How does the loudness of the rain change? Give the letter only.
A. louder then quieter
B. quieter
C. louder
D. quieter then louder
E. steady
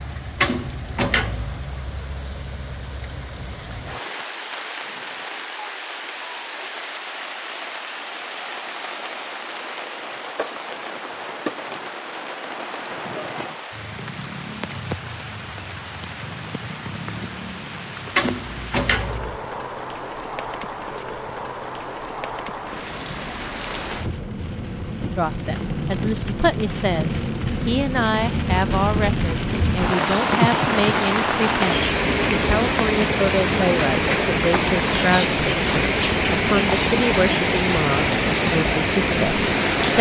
C.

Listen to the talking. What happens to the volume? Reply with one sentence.
The volume of the talking stays about the same.